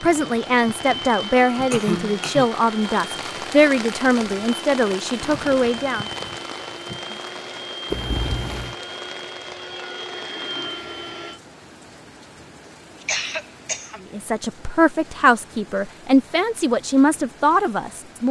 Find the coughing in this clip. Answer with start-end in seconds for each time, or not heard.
1.7-2.5, 7.9-8.8, 13.0-14.0.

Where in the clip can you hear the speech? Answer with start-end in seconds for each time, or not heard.
0.0-6.0, 14.1-18.2.